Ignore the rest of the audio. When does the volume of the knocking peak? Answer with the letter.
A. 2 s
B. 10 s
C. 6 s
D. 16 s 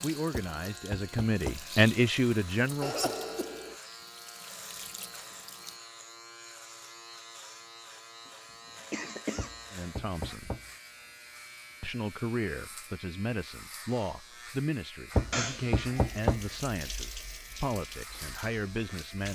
D.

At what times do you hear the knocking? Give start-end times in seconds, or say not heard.
0.3-1.7, 9.3-10.7, 15.2-16.5.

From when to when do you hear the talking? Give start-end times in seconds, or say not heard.
0.0-3.1, 9.7-10.6, 11.8-19.3.